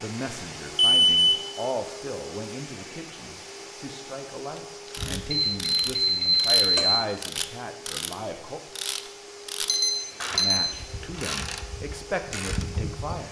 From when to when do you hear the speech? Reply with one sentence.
The speech can be heard from 0.0 to 8.6 s and from 10.3 to 13.2 s.